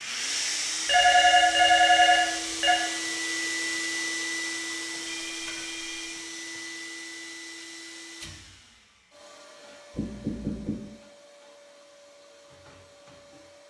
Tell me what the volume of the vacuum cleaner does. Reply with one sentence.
The loudness of the vacuum cleaner goes down.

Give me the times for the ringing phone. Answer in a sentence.
You can hear the ringing phone from 0.8 to 2.8 s, from 4.9 to 6.6 s and from 9.9 to 10.8 s.